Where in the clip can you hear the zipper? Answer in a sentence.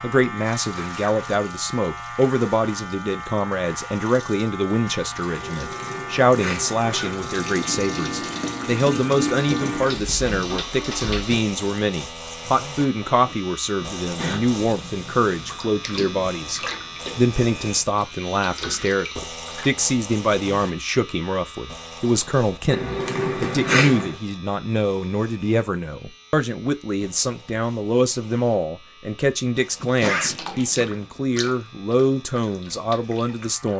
You can hear the zipper from 5.4 to 7.4 s and from 22.6 to 24.1 s.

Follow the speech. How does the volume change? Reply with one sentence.
The volume of the speech stays about the same.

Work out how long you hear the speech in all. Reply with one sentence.
The speech can be heard for 34 seconds in total.